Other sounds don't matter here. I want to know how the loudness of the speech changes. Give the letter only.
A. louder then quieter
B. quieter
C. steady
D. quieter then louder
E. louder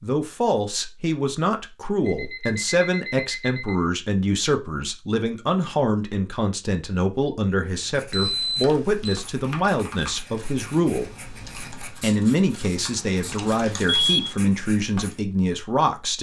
C.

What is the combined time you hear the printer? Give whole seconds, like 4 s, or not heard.
not heard.